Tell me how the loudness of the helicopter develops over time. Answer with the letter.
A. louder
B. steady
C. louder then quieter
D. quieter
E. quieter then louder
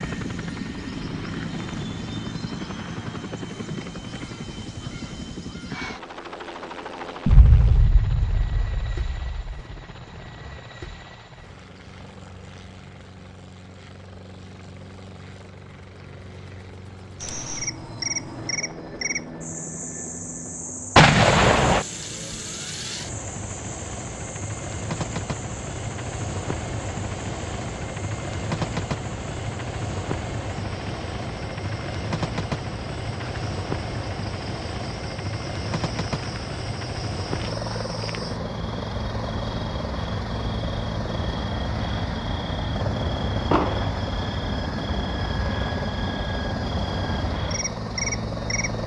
E.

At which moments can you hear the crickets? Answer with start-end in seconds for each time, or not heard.
17.2-48.8.